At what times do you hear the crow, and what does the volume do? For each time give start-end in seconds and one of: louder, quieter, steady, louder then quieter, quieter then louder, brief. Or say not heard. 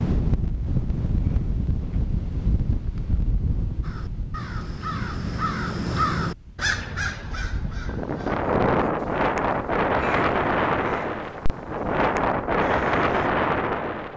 3.8-13.3 quieter.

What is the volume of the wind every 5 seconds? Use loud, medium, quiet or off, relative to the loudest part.
medium, loud, loud.